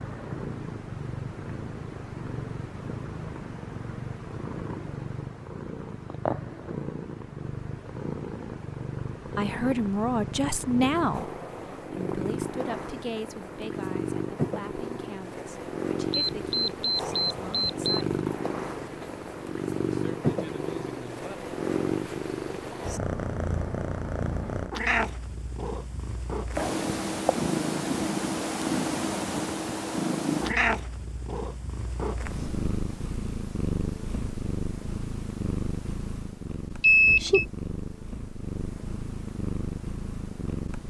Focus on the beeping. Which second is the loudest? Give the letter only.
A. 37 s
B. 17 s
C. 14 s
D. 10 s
A.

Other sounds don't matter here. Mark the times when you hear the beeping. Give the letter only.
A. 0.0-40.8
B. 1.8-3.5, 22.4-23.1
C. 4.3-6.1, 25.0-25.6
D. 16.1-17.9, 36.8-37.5
D.